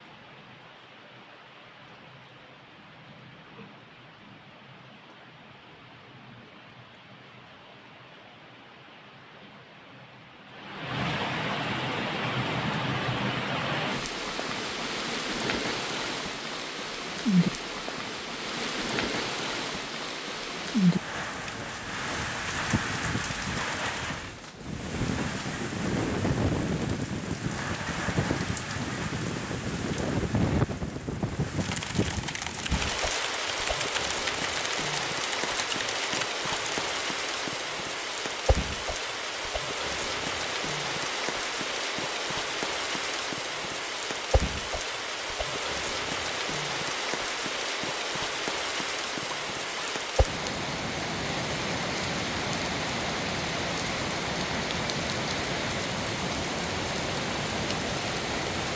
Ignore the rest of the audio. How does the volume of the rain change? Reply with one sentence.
The volume of the rain goes up.